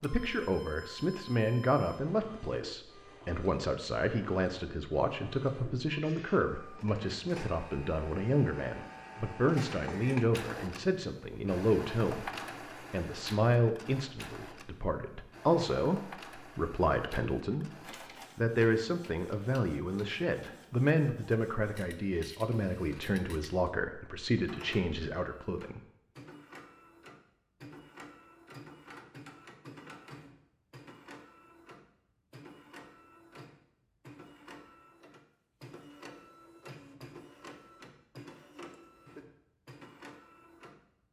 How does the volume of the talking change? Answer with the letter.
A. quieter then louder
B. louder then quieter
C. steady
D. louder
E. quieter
C.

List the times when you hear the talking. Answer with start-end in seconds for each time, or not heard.
0.0-25.8.